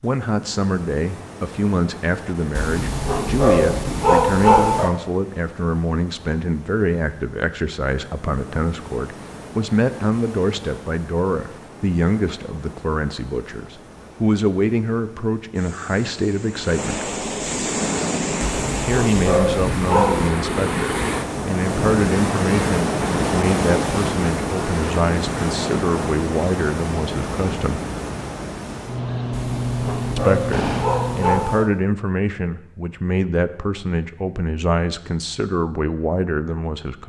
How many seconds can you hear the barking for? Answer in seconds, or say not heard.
7 s.